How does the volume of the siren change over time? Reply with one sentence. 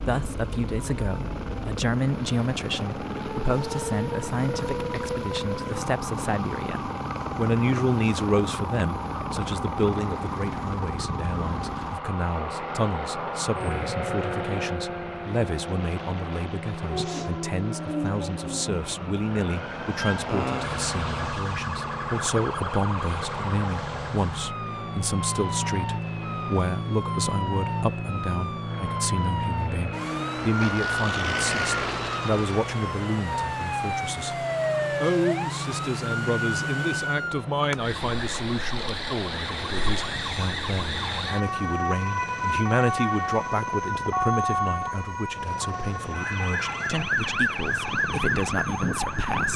The volume of the siren goes up.